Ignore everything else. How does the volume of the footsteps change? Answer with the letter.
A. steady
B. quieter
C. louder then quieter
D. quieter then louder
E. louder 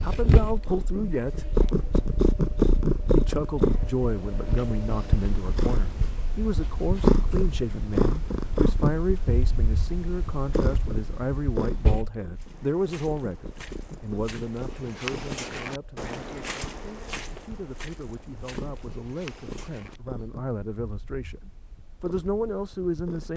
C.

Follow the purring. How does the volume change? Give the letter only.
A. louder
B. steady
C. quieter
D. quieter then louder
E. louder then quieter
C.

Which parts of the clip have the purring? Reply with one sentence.
You can hear the purring from 0.0 to 23.3 s.